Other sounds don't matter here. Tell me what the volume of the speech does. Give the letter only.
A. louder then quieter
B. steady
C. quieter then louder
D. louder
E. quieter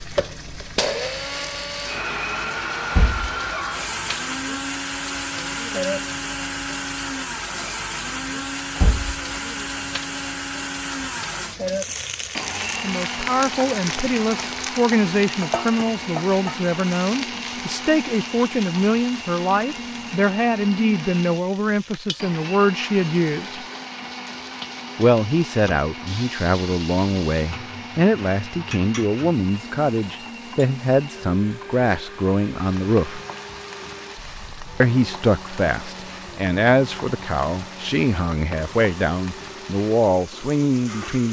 B.